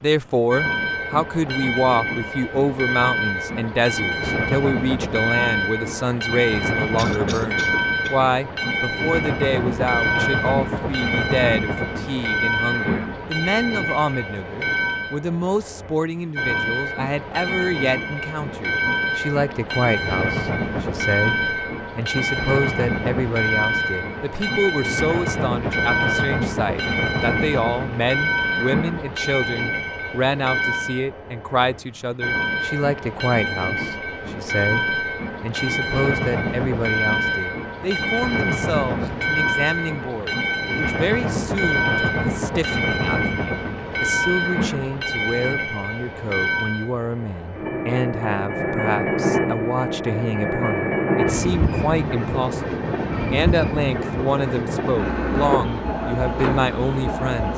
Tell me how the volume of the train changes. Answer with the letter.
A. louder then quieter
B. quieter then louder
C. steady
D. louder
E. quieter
C.